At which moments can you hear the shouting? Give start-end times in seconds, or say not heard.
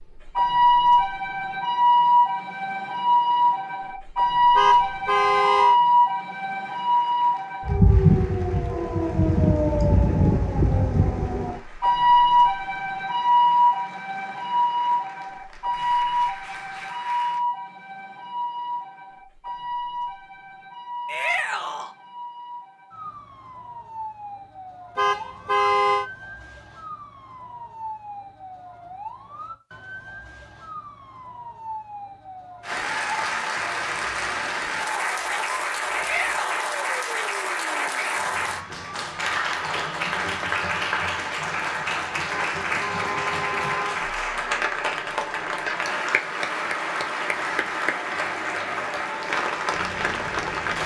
21.1-21.9, 35.9-36.8.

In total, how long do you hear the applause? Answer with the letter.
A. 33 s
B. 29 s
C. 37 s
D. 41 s
B.